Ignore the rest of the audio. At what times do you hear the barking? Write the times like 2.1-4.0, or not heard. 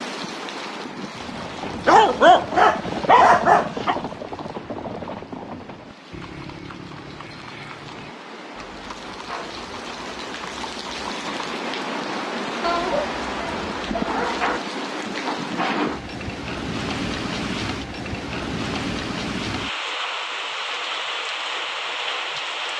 1.9-4.0, 12.6-14.6.